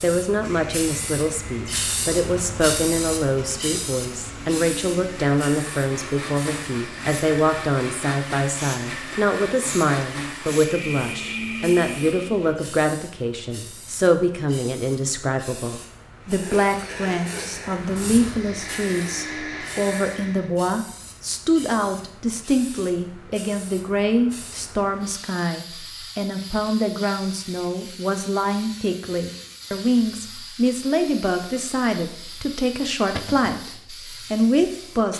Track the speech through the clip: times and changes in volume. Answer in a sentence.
You can hear the speech from 0.0 to 35.1 s, at a steady volume.